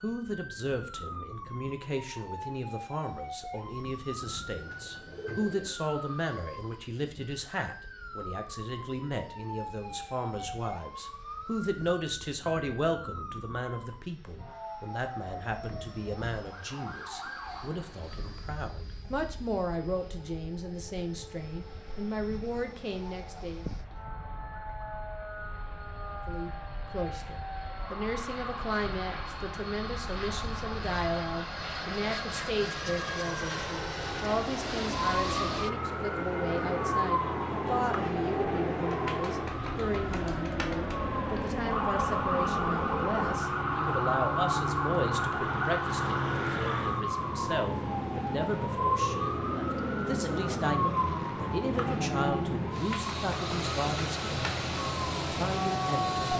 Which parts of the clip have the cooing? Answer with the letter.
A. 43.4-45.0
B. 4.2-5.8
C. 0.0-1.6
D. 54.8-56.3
B.